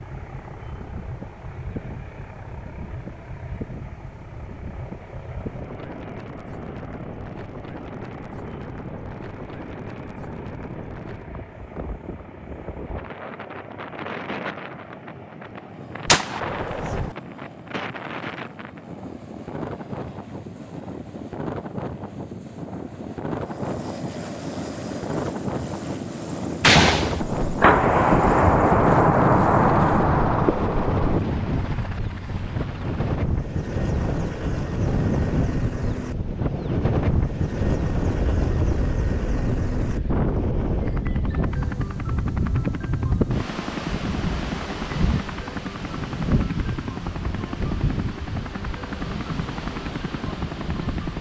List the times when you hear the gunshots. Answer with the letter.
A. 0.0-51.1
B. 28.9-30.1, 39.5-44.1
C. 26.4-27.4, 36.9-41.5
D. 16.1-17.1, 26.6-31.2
D.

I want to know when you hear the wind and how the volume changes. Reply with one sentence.
The wind can be heard from 0.0 to 51.1 s, getting louder.